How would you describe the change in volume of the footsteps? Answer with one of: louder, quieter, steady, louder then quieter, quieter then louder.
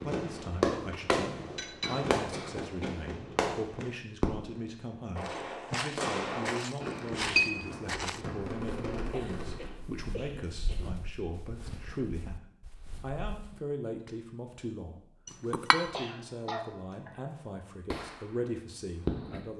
quieter.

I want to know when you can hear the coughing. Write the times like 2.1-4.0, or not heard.
1.8-3.0, 9.1-10.9, 15.9-17.2.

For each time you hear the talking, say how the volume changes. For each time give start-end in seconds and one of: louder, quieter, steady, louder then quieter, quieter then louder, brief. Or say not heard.
0.0-19.5 steady.